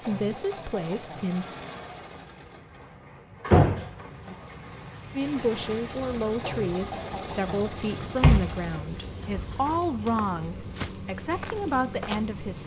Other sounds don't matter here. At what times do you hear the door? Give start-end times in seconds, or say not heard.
3.5-4.3, 8.2-9.6.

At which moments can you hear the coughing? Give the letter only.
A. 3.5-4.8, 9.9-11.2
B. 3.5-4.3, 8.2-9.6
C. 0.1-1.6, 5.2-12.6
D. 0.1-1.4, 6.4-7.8
D.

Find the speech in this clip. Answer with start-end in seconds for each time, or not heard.
0.1-1.6, 5.2-12.6.